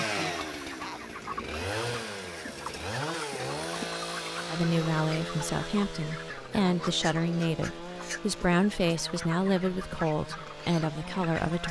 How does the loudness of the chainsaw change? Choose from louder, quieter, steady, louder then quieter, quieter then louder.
quieter.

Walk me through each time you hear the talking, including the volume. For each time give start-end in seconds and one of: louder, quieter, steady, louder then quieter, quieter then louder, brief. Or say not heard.
4.5-11.6 steady.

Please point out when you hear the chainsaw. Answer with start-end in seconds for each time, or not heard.
0.0-11.6.